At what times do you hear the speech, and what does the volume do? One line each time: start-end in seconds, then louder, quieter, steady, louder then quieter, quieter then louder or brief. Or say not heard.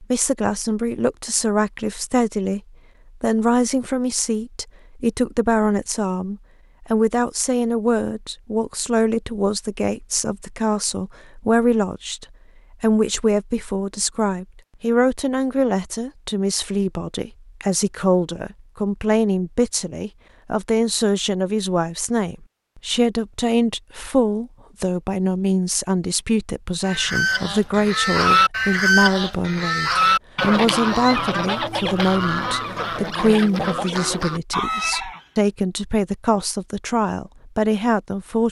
0.0-2.6 brief
3.2-38.4 steady.